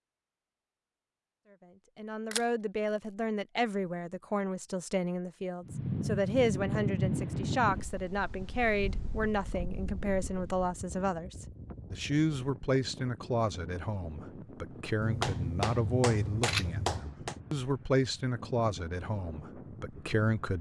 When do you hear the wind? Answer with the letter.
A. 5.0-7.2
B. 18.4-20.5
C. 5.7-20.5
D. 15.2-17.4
C.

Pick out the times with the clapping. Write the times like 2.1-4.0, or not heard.
15.2-17.4.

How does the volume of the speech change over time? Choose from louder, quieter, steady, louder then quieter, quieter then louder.
steady.